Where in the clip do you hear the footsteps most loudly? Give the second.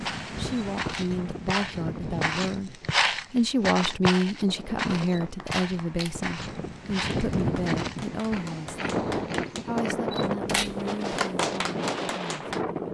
3 s.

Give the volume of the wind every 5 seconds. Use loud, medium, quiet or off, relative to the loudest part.
medium, loud, loud.